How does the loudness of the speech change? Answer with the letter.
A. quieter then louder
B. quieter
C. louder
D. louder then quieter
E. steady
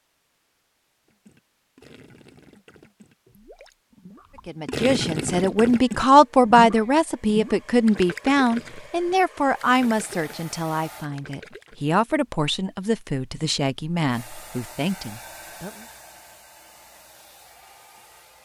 B.